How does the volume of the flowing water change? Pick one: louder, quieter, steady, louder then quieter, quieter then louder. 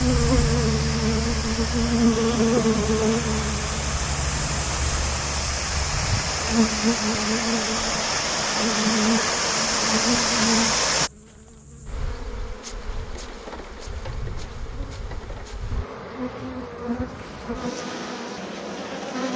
louder.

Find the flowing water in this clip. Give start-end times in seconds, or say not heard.
0.0-11.1.